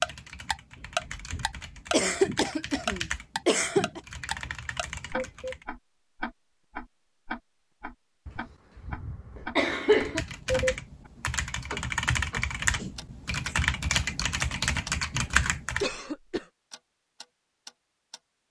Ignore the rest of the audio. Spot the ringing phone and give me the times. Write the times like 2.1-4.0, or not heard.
not heard.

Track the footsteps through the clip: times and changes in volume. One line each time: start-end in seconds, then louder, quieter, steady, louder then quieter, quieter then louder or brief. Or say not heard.
not heard.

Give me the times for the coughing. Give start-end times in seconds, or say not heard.
1.9-4.0, 8.2-10.2, 15.8-16.4.